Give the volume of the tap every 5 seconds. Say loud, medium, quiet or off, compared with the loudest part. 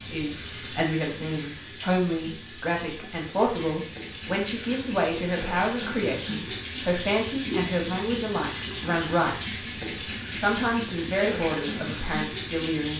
medium, loud, loud.